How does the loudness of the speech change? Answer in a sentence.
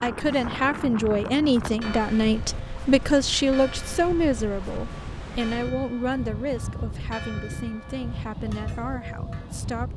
The volume of the speech goes down.